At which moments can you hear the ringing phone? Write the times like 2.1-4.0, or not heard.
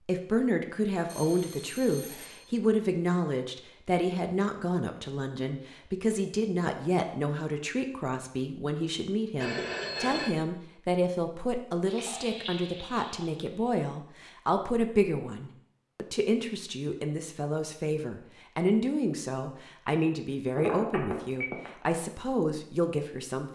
1.1-2.5, 9.4-10.3, 20.6-21.7.